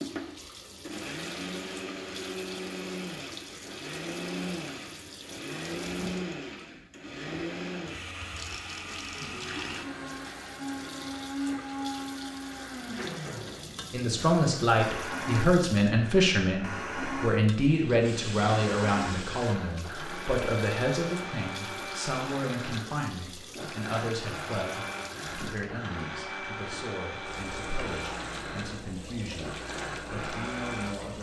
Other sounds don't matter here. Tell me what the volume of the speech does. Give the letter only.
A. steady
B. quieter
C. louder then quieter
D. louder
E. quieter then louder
B.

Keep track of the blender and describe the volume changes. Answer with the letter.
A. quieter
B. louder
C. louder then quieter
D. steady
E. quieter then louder
D.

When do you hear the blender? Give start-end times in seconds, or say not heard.
0.0-31.1.